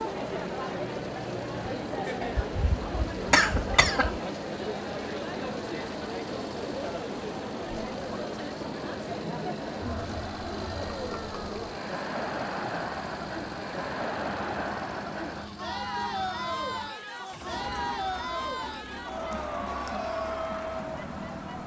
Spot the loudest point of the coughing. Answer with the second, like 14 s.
3 s.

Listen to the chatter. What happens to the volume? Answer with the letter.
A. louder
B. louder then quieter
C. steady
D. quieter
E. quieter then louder
C.